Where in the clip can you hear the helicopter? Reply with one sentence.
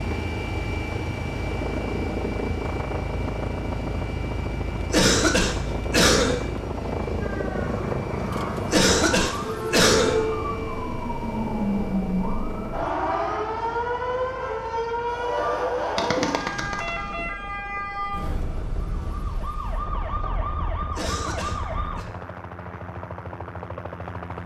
You can hear the helicopter from 0.0 to 24.4 s.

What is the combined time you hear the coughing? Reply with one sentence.
You can hear the coughing for 4 seconds altogether.